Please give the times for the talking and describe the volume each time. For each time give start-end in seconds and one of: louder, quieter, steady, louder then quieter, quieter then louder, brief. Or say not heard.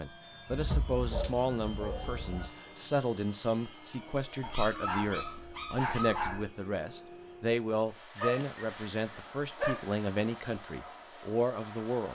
0.0-12.0 steady.